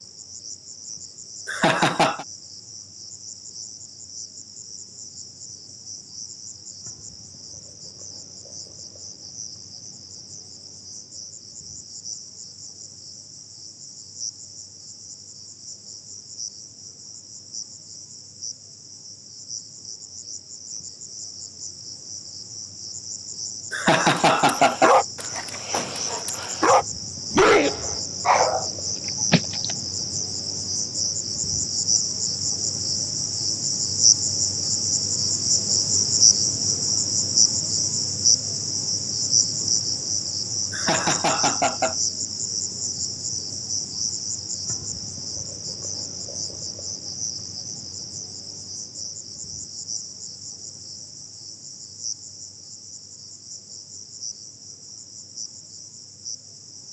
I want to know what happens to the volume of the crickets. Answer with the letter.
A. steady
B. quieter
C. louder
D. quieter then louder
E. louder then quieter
E.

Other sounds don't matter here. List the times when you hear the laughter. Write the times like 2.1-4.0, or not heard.
1.4-2.2, 23.7-24.9, 40.7-42.0.